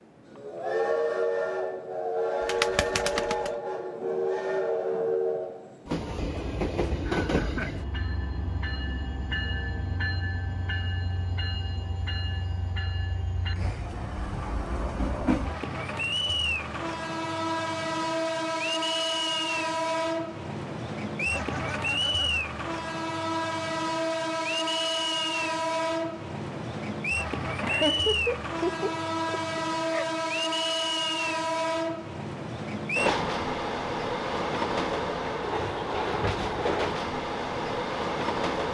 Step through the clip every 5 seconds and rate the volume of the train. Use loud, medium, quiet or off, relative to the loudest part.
loud, loud, medium, loud, loud, loud, loud, loud.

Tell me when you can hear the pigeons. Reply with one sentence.
You can hear the pigeons from 2.4 to 3.5 s.